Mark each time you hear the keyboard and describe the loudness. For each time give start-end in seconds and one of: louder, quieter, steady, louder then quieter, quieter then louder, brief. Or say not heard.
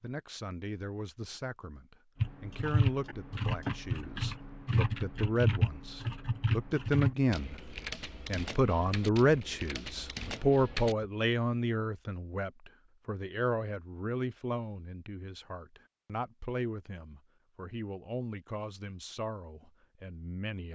2.2-11.1 quieter.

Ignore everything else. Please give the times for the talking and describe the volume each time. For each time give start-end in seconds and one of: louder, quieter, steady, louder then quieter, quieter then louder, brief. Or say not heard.
0.0-20.6 louder then quieter.